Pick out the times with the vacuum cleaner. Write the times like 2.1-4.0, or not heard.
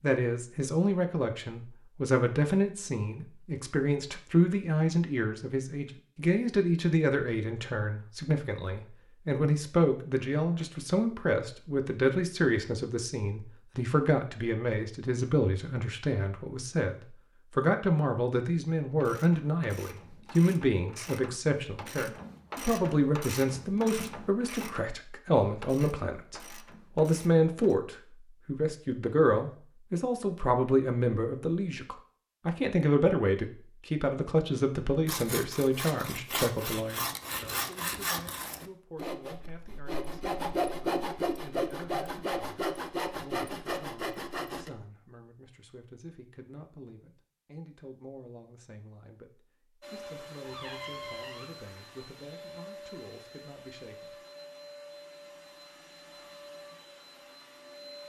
49.8-58.0.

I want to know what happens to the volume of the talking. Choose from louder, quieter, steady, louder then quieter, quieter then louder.
quieter.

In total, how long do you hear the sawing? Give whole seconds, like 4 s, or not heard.
10 s.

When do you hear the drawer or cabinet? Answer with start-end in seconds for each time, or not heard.
50.4-51.5.